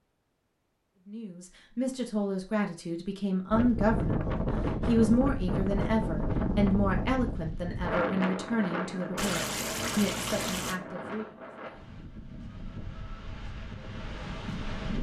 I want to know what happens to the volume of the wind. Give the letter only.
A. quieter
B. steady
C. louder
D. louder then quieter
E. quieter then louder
A.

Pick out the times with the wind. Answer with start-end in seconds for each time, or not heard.
3.5-14.9.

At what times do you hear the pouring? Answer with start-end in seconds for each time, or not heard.
9.2-10.8.